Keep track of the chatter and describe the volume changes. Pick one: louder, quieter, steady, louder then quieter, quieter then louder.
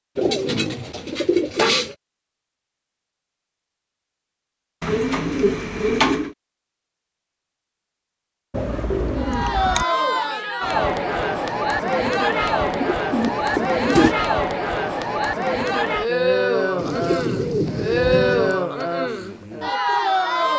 steady.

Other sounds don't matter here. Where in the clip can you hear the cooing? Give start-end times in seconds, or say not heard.
0.1-1.9, 4.8-6.3, 8.5-9.8, 12.6-14.2, 16.8-18.6.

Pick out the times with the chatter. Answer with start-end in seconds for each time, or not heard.
9.2-20.5.